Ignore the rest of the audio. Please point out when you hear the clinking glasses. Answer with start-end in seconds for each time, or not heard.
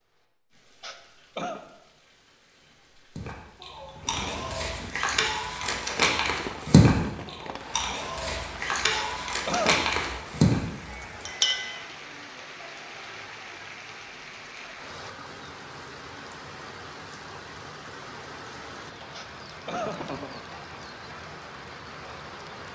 10.9-11.8.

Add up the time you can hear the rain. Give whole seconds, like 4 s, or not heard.
23 s.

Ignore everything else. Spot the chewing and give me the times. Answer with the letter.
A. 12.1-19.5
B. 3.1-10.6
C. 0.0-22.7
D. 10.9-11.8
B.